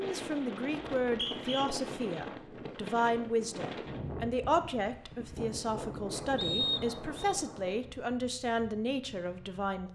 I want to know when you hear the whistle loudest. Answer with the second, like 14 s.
7 s.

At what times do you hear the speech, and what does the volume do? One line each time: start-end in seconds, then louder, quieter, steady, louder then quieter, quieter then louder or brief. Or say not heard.
0.0-9.9 steady.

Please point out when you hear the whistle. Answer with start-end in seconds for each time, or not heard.
1.1-1.6, 6.3-7.3.